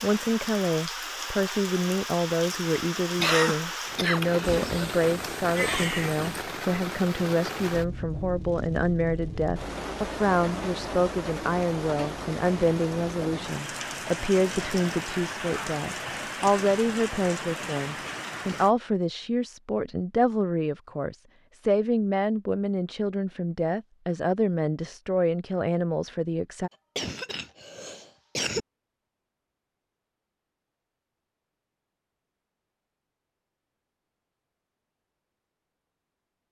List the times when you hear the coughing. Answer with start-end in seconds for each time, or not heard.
3.1-4.9, 26.9-28.6.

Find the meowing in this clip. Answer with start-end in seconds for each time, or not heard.
4.4-6.4.